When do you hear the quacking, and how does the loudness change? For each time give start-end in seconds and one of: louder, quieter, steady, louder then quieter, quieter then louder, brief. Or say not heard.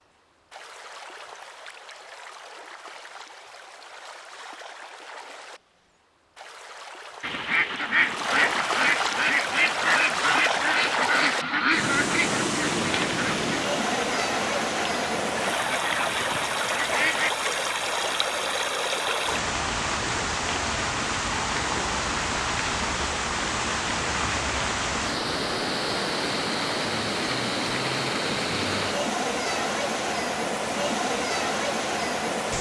7.2-17.3 quieter.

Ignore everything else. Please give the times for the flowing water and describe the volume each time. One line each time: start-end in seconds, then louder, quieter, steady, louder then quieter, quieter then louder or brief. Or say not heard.
0.0-32.5 louder.